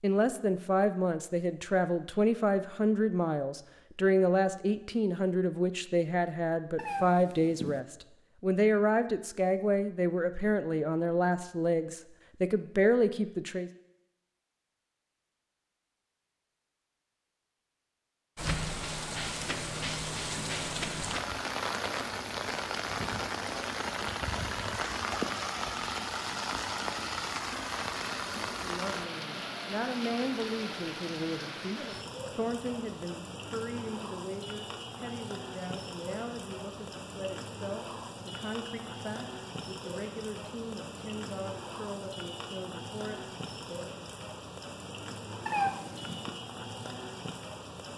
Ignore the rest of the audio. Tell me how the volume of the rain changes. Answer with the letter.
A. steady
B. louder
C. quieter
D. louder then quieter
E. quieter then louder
C.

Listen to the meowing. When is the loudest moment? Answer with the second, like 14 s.
46 s.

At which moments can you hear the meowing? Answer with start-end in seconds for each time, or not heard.
6.8-7.8, 45.5-46.4.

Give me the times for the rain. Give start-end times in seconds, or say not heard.
18.4-47.9.